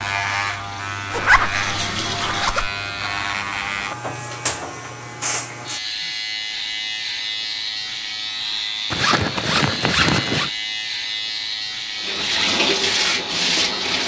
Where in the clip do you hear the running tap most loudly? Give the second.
13 s.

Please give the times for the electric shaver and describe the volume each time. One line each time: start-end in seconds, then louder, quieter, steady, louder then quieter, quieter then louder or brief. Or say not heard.
0.0-14.0 steady.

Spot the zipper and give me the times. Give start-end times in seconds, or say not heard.
1.1-2.7, 8.9-10.5.